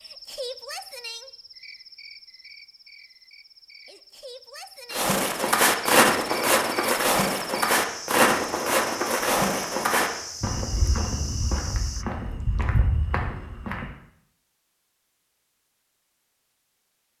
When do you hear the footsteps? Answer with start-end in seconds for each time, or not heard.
4.9-13.8.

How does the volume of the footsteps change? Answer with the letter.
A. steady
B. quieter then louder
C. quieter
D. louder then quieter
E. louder
C.